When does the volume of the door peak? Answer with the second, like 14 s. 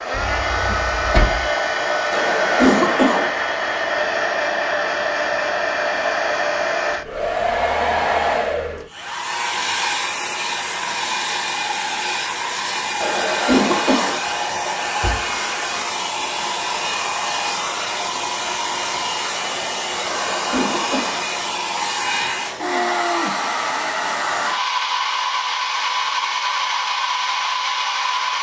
1 s.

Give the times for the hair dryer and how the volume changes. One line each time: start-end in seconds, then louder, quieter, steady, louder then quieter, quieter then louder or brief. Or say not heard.
0.0-28.3 steady.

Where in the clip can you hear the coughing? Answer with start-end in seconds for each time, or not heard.
2.1-3.3, 13.0-14.2, 20.0-21.2.